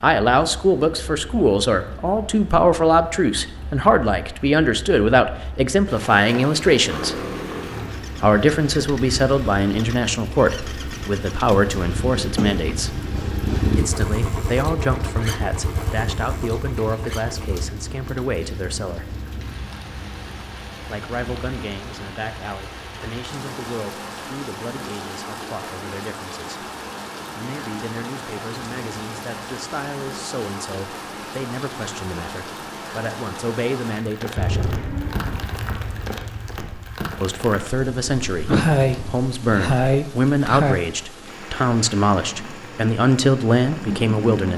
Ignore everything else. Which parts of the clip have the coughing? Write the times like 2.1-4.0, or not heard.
12.2-13.8, 38.5-40.8.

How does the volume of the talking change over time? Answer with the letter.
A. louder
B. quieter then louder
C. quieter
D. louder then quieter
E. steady
B.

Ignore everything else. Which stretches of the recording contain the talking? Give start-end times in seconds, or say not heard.
0.0-7.2, 8.2-12.9, 13.8-19.1, 20.9-26.6, 27.4-34.8, 37.2-44.5.